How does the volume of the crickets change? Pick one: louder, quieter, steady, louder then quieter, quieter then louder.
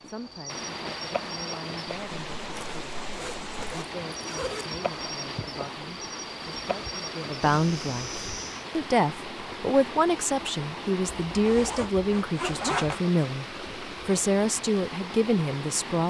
quieter then louder.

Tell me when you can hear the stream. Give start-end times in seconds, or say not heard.
0.0-16.0.